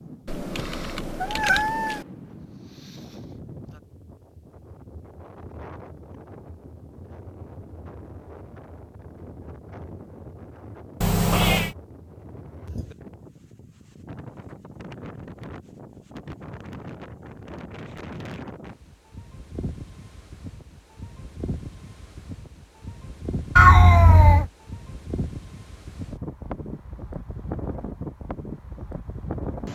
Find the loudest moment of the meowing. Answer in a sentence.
The volume of the meowing peaks at 24 seconds.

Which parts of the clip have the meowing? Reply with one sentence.
The meowing can be heard from 0.2 to 2.0 s, from 11.0 to 11.8 s and from 23.6 to 24.4 s.